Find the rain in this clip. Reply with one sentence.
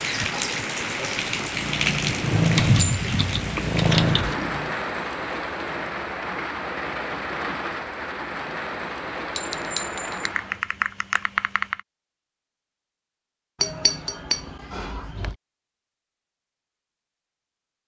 The rain can be heard from 0.0 to 10.7 s.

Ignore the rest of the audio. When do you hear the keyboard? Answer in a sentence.
You can hear the keyboard from 2.5 to 4.3 s and from 10.2 to 11.8 s.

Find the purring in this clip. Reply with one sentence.
You can hear the purring from 1.3 to 4.8 s.